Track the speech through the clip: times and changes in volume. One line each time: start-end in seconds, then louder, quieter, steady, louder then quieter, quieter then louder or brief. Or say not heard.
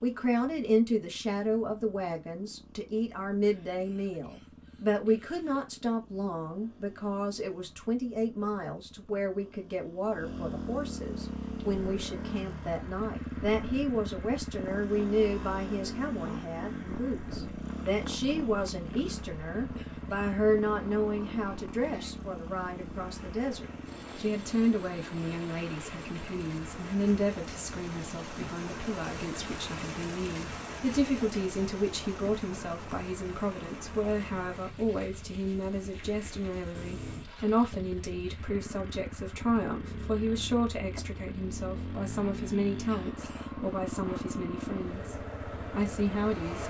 0.0-46.6 steady.